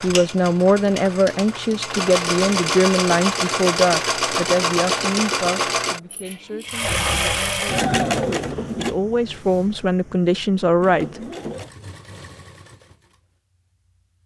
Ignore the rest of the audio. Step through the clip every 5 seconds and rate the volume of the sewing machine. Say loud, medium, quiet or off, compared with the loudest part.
loud, loud, quiet.